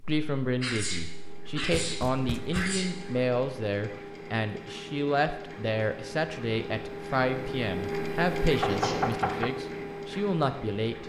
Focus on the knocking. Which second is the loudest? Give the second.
9 s.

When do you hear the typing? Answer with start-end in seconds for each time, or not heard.
not heard.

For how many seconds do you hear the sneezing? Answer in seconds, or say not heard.
3 s.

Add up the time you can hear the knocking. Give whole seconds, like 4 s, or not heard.
2 s.